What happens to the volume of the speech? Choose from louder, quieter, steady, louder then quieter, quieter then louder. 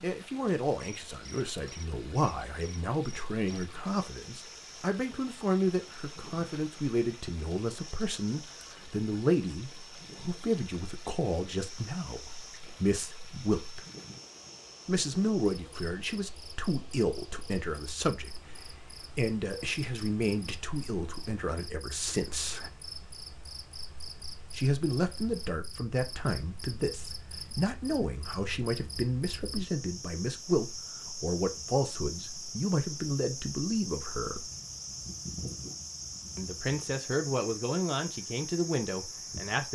steady.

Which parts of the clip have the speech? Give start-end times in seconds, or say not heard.
0.0-13.8, 14.8-22.7, 24.6-34.5, 36.4-39.7.